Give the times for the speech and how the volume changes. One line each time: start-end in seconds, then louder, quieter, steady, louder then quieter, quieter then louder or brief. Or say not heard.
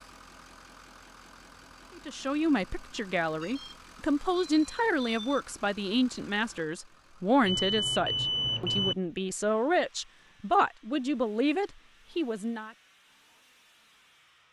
1.9-12.7 steady.